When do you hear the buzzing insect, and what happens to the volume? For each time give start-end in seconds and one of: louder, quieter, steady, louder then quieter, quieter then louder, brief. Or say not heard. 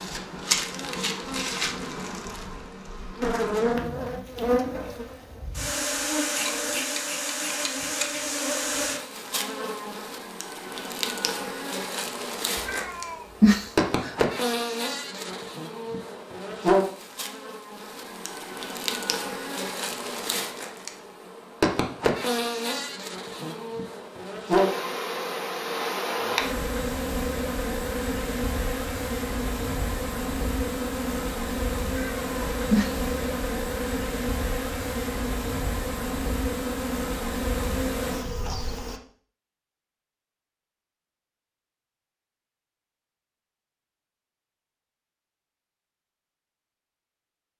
0.0-39.0 steady.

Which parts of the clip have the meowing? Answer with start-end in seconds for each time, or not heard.
12.7-14.1, 31.9-33.0.